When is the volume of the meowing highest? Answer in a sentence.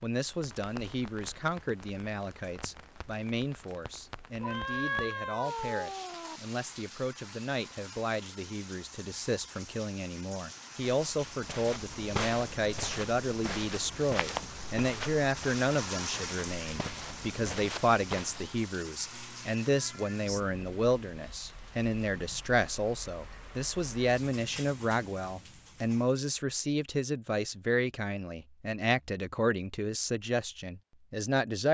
The loudest moment of the meowing is at 5 seconds.